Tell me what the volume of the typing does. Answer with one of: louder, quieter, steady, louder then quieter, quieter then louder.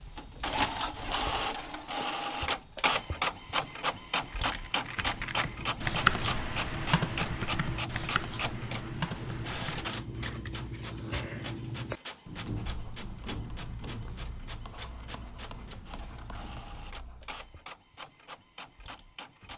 louder then quieter.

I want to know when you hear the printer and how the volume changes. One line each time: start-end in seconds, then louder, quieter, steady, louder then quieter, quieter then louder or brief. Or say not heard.
0.0-19.5 quieter.